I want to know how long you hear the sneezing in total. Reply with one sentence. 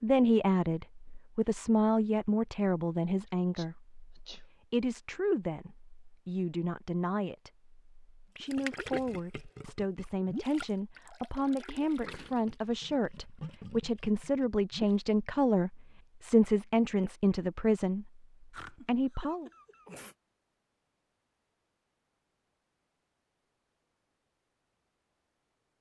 You can hear the sneezing for 3 seconds altogether.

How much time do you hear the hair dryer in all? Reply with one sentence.
You can't hear the hair dryer here.